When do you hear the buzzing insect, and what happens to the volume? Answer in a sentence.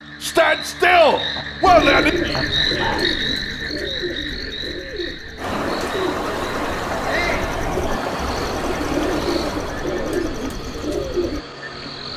The buzzing insect can't be heard in this clip.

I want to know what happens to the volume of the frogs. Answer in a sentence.
The volume of the frogs goes down.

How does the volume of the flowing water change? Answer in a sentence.
The volume of the flowing water goes down.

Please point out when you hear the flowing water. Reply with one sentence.
You can hear the flowing water from 5.3 to 12.1 s.